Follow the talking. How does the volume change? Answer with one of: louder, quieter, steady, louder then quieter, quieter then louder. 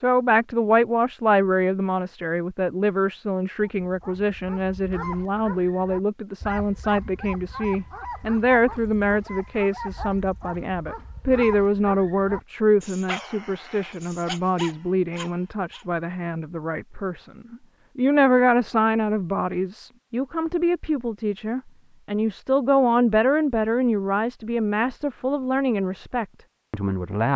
steady.